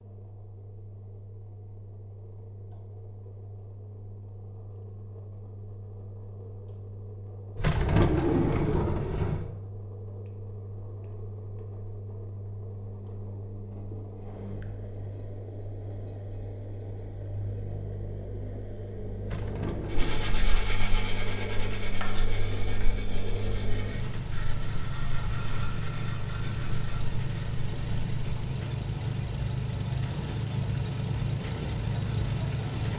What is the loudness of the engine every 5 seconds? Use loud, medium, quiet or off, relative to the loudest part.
quiet, quiet, quiet, medium, medium, loud, loud.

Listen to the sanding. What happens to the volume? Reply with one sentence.
The volume of the sanding goes down.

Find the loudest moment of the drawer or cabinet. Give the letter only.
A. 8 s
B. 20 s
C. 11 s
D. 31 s
A.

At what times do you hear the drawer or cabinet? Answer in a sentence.
The drawer or cabinet can be heard from 7.5 to 9.5 s and from 19.2 to 20.4 s.